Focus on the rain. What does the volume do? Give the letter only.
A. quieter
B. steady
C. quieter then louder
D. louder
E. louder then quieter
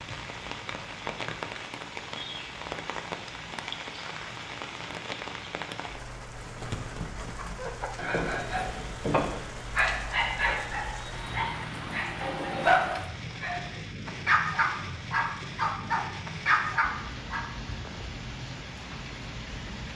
B.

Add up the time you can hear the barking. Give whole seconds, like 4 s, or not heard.
10 s.